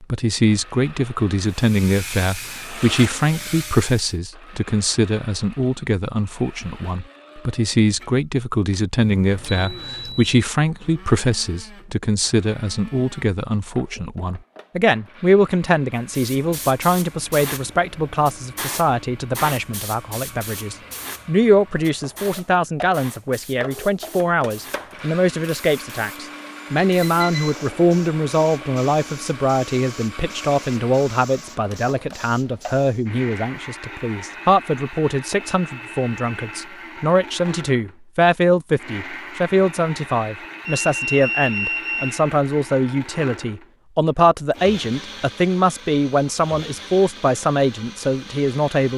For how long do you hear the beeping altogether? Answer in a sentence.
The beeping can be heard for 4 seconds in total.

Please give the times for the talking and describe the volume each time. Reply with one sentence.
You can hear the talking from 0.0 to 48.9 s, at a steady volume.